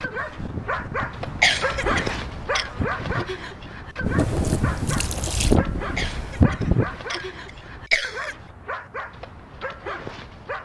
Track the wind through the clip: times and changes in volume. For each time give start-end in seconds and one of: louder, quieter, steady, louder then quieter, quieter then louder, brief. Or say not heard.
0.0-7.0 louder.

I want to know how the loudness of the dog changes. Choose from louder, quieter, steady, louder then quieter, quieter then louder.
quieter.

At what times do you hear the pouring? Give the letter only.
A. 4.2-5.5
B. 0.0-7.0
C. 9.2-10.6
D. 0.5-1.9
A.